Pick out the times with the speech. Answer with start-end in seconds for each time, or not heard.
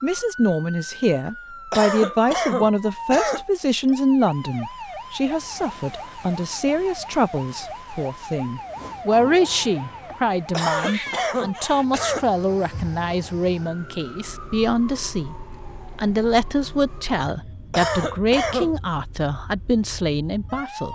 0.0-15.3, 15.9-20.9.